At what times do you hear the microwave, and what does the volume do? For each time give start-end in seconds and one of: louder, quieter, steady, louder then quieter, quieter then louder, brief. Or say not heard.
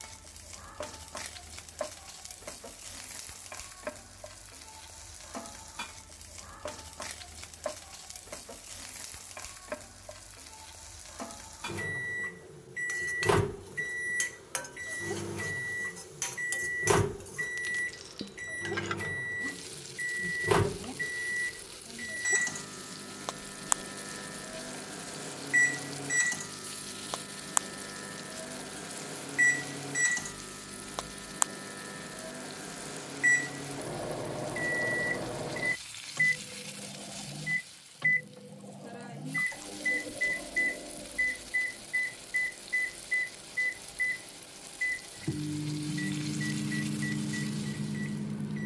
11.7-48.6 steady.